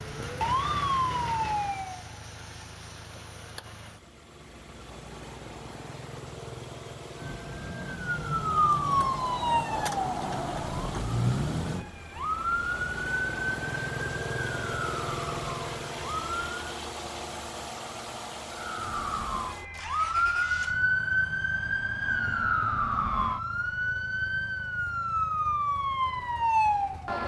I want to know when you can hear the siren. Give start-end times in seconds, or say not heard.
0.0-2.0, 7.2-16.6, 18.5-27.2.